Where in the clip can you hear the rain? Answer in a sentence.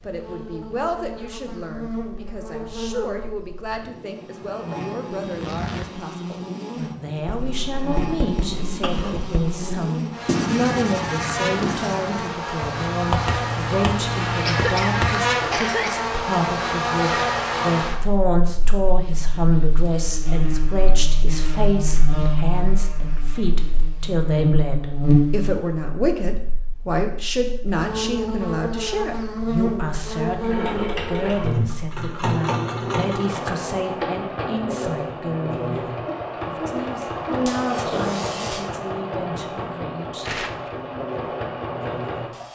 The rain can't be heard in this clip.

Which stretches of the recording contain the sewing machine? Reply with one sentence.
The sewing machine can be heard from 30.4 to 42.5 s.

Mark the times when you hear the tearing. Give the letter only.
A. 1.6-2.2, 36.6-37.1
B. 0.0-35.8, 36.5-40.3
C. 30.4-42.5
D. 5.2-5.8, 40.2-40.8
D.